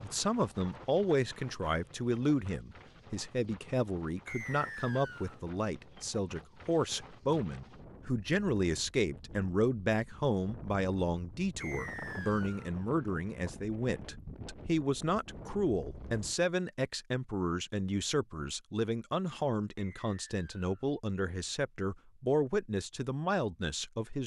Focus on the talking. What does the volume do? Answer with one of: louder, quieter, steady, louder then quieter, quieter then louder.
steady.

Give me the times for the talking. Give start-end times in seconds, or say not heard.
0.0-24.2.